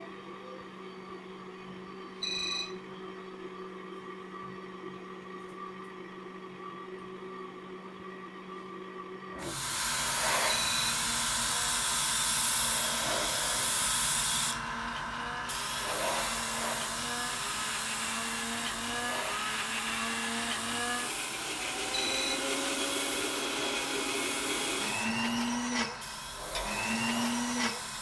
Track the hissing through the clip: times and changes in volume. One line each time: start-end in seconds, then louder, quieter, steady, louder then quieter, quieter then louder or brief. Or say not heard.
9.3-27.9 quieter.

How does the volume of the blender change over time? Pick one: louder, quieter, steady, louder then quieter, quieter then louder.
louder.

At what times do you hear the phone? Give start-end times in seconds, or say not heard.
2.2-2.7, 10.4-10.9, 21.9-22.4.